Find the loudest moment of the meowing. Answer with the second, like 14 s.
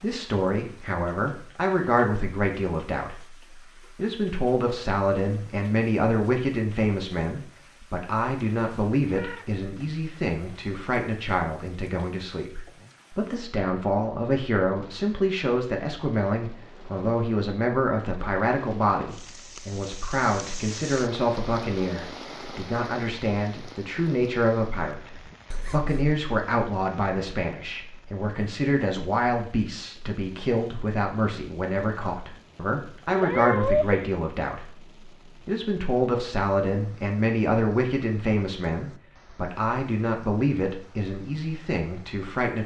34 s.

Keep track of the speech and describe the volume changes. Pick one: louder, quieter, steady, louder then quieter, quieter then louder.
steady.